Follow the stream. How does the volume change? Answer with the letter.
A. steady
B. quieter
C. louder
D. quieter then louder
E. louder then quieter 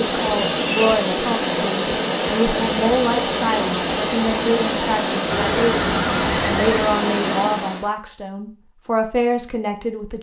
A.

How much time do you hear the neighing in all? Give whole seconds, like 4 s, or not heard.
2 s.